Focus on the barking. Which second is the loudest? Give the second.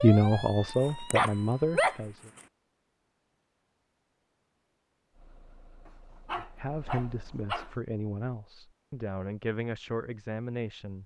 2 s.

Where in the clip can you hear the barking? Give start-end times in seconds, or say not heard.
0.7-2.4, 5.8-7.7.